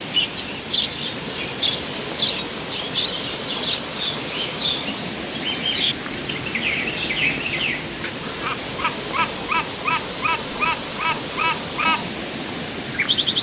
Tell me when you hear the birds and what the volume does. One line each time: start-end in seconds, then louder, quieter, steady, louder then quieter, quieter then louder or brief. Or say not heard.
0.0-13.3 steady.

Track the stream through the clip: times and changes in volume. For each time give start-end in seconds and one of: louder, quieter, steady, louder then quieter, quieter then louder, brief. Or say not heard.
0.0-13.3 steady.